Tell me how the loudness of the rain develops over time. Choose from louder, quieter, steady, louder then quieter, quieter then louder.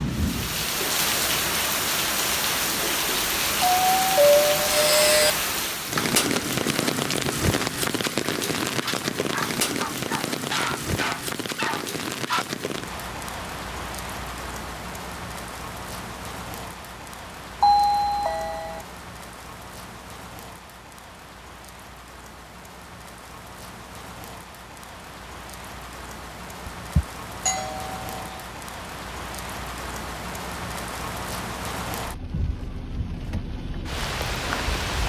quieter then louder.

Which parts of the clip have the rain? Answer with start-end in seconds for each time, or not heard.
0.0-35.0.